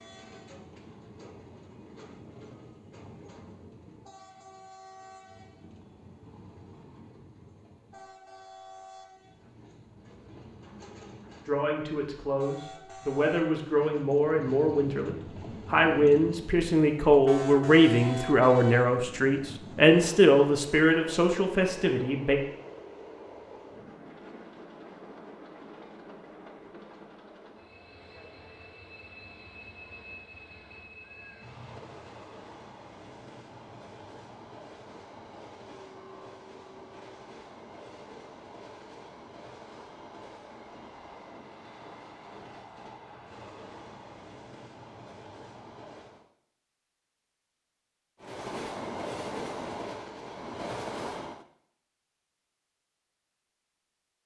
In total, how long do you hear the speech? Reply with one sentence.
You can hear the speech for 11 seconds altogether.